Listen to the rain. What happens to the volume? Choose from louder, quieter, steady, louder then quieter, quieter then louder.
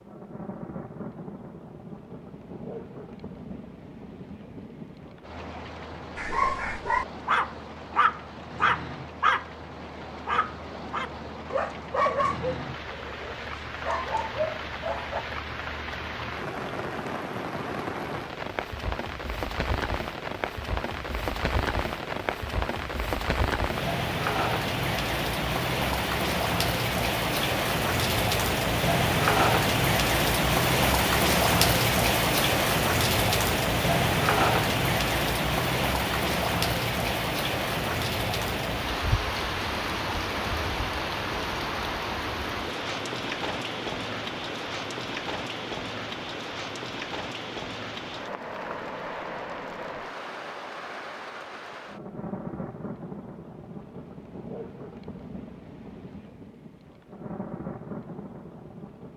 louder then quieter.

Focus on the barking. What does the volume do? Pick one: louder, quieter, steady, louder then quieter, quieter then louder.
quieter.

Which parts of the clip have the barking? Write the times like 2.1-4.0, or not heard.
6.2-15.2.